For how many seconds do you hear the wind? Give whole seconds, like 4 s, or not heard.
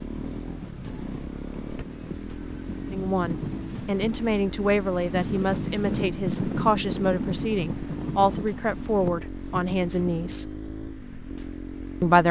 10 s.